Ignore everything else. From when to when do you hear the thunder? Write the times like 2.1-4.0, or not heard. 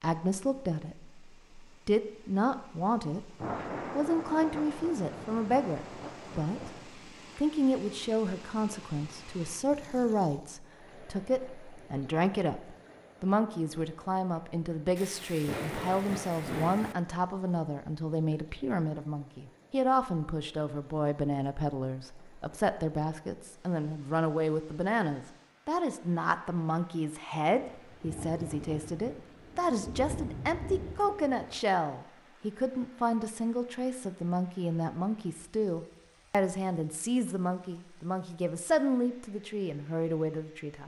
3.4-6.9, 14.9-16.9, 27.6-31.6.